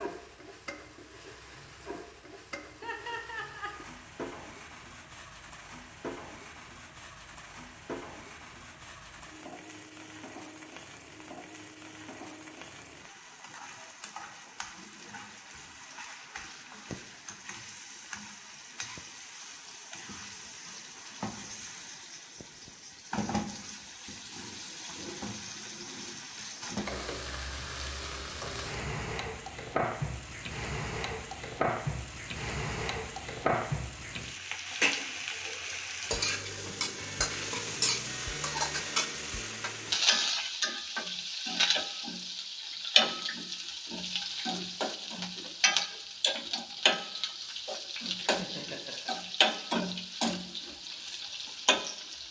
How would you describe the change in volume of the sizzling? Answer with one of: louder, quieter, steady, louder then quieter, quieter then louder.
louder.